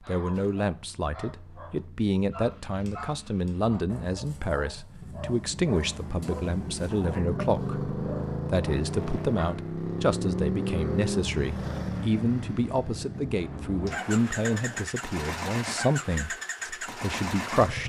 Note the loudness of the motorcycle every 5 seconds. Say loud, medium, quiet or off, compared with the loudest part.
quiet, loud, loud, loud.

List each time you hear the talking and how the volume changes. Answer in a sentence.
The talking can be heard from 0.0 to 17.8 s, at a steady volume.